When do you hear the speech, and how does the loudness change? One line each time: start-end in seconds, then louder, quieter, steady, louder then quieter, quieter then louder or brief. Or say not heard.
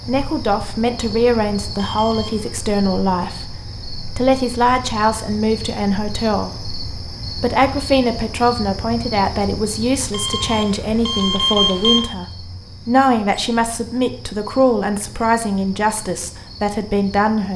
0.1-17.5 steady.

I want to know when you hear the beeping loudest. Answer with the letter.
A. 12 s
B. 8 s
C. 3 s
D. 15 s
A.